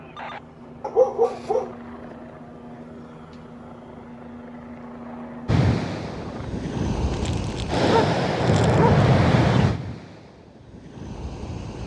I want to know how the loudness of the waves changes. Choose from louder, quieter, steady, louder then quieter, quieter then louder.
louder then quieter.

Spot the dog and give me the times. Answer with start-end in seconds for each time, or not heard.
0.8-1.8, 7.1-9.1.